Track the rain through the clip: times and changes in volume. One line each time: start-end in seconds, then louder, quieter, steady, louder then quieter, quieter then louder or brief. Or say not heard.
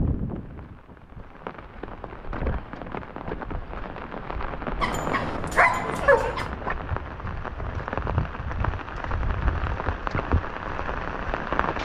0.0-11.8 louder.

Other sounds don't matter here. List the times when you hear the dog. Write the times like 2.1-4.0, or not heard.
4.8-6.5.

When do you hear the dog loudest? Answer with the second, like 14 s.
6 s.